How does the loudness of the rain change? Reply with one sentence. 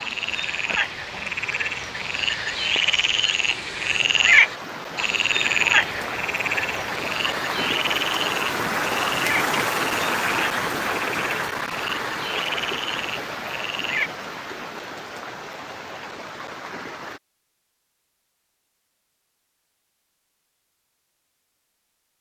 The loudness of the rain goes up, then down.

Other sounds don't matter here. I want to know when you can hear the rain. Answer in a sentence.
You can hear the rain from 0.0 to 17.2 s.